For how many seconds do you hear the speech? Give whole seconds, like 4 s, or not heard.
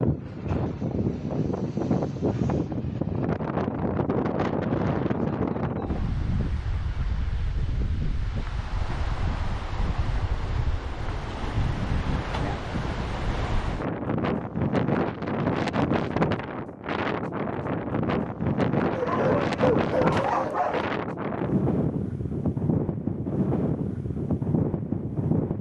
not heard.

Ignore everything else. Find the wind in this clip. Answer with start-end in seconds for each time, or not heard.
0.0-25.5.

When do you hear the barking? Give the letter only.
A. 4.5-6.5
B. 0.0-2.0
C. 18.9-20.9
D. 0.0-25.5
C.